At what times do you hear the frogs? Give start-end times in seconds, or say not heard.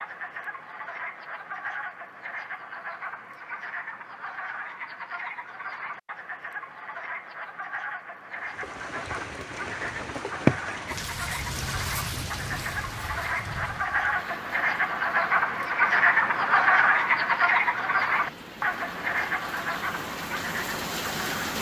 0.0-21.5.